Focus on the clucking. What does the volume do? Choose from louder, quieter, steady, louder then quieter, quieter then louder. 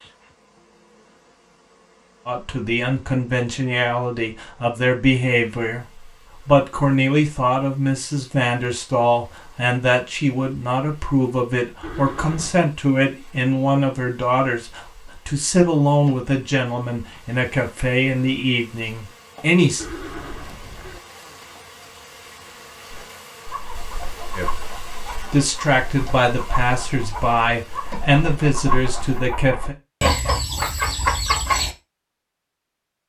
louder.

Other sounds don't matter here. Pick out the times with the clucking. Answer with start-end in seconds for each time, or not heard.
22.9-31.8.